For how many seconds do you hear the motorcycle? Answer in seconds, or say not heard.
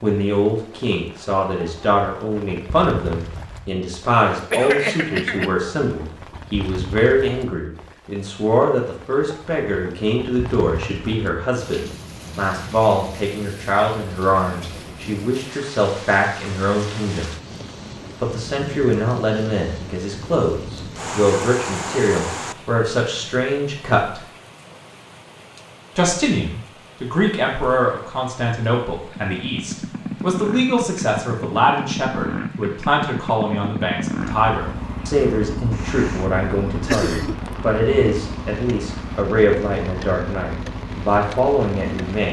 13 s.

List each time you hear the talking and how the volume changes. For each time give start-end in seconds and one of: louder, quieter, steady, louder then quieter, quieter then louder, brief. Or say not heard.
0.0-17.3 steady
18.2-24.2 steady
25.9-42.2 steady.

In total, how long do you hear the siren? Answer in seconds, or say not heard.
not heard.